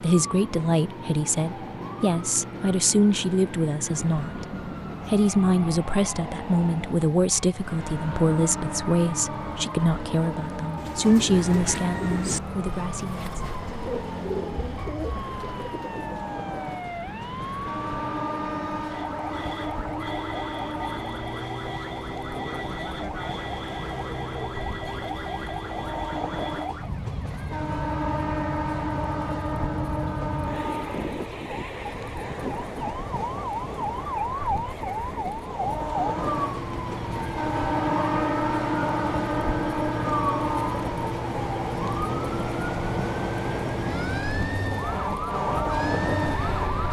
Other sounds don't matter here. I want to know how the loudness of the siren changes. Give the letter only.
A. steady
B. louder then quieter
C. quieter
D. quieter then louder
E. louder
E.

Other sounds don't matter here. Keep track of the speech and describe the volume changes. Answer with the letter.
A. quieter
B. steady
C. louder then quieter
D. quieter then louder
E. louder
B.